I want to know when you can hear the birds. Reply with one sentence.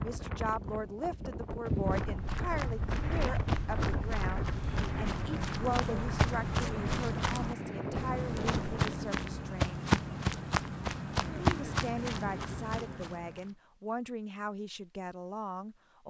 You can't hear the birds here.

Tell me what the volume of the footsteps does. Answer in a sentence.
The loudness of the footsteps goes up.